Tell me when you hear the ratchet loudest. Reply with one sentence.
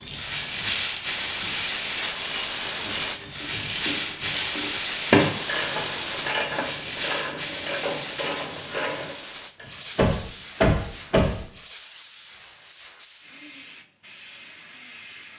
The volume of the ratchet peaks at 5 seconds.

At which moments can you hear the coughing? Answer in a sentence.
The coughing can't be heard in this clip.